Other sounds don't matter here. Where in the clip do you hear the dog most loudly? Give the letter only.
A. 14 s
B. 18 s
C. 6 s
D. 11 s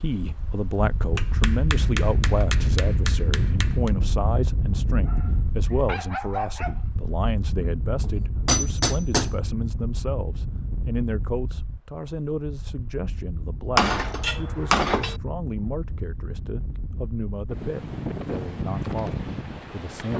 C.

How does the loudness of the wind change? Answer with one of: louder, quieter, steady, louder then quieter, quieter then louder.
quieter then louder.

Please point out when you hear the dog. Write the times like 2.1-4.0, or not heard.
5.0-6.8.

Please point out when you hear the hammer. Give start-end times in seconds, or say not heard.
1.1-3.9, 8.0-9.3, 13.8-15.2.